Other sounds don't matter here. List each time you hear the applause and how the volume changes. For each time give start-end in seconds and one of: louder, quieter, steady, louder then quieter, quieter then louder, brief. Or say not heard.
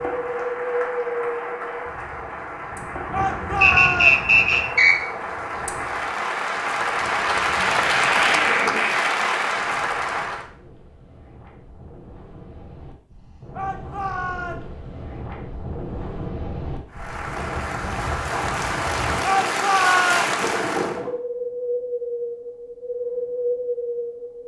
0.0-10.5 louder
16.9-21.0 louder.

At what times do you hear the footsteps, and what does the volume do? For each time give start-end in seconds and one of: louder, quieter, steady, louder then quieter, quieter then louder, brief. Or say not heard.
not heard.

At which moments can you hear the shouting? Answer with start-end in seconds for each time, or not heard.
3.1-4.2, 13.6-14.6, 19.2-20.2.